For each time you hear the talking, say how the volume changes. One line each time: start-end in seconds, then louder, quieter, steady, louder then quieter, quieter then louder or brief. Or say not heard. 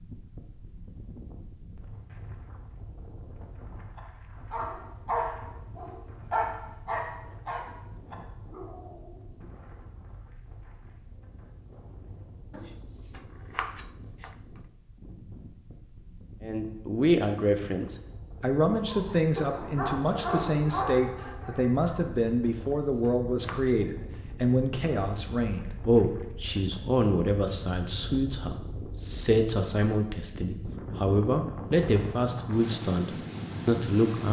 16.4-34.2 steady.